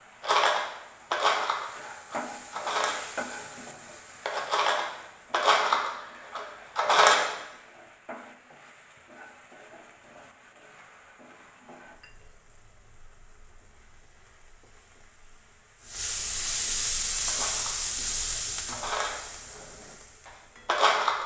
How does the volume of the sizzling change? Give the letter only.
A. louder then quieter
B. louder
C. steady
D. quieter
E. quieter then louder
E.